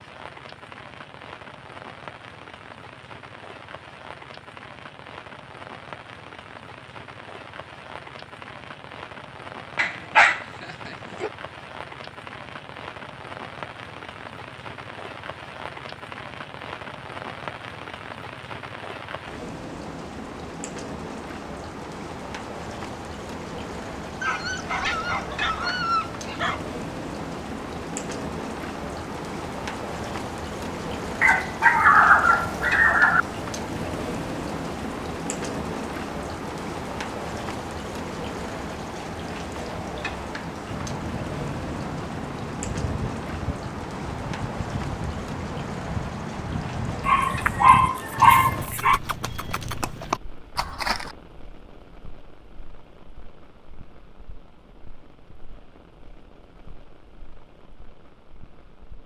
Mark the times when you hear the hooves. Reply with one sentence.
The hooves can be heard from 40.6 to 51.1 s.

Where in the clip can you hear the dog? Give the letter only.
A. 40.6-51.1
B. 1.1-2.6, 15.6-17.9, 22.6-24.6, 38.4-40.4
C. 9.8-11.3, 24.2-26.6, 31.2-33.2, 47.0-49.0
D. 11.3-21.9
C.